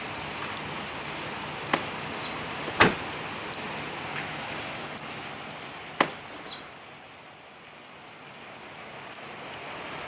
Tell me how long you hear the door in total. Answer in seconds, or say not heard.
2 s.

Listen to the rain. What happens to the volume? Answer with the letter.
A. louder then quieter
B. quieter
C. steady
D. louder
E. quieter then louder
B.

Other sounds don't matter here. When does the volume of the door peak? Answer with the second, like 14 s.
3 s.